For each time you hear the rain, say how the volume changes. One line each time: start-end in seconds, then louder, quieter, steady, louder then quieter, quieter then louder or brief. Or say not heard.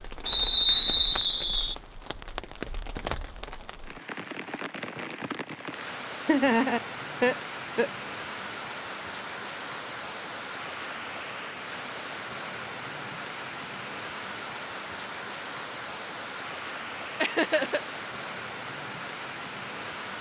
0.0-20.1 steady.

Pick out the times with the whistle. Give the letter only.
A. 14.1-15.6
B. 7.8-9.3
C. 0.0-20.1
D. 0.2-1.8
D.